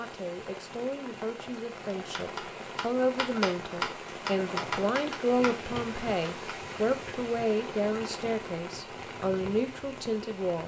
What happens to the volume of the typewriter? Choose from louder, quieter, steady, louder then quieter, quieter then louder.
louder then quieter.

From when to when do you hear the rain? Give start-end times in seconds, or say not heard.
0.0-10.6.